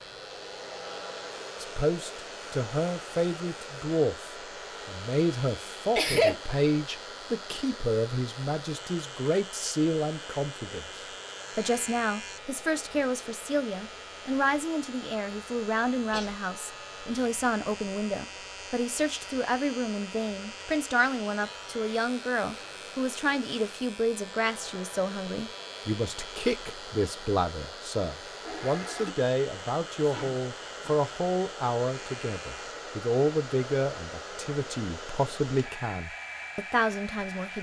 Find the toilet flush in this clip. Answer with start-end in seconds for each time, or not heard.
28.4-29.1.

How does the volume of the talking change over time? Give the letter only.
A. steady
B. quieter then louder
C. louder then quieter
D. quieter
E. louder
A.